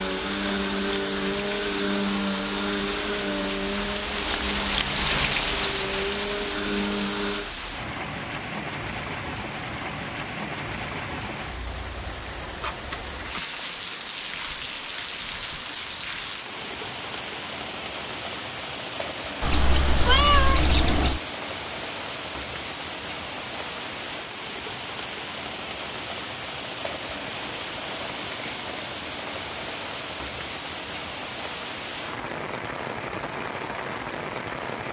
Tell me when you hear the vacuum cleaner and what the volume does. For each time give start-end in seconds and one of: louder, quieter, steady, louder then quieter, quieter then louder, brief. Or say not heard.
0.0-7.5 quieter then louder.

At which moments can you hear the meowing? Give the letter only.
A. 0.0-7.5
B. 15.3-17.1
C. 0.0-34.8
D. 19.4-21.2
D.